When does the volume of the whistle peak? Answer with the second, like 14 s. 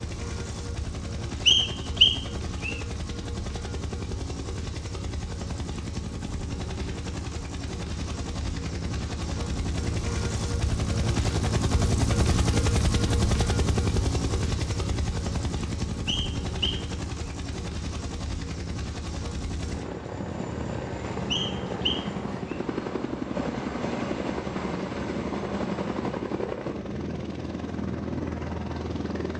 2 s.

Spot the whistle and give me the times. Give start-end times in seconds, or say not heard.
1.4-2.8, 16.1-16.9, 21.3-22.6.